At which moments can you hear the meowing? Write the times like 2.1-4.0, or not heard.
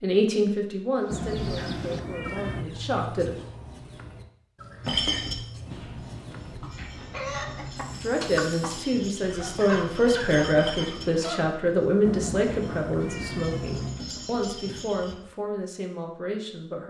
1.1-2.6, 5.7-8.2, 12.0-14.1.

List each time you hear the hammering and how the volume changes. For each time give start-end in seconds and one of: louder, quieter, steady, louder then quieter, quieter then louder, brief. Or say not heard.
not heard.